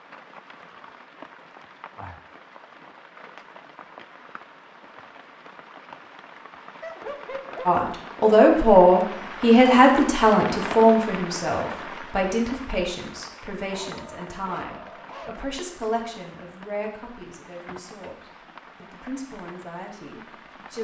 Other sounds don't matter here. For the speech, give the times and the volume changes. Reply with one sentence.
The speech can be heard from 7.7 to 18.2 s, getting quieter; and briefly from 18.8 to 20.8 s.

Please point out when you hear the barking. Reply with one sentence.
You can hear the barking from 6.8 to 7.7 s and from 13.7 to 15.3 s.